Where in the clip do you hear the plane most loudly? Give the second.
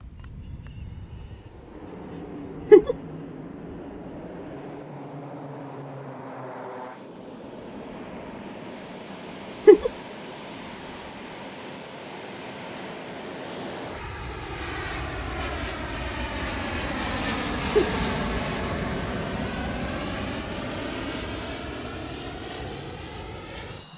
18 s.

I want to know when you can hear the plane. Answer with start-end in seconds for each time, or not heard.
0.0-23.9.